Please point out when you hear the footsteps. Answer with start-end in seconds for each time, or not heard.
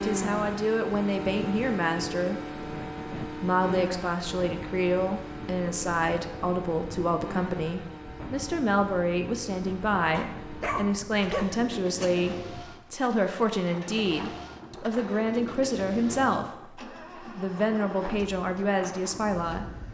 not heard.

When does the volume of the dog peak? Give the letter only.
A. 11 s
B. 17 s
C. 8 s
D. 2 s
A.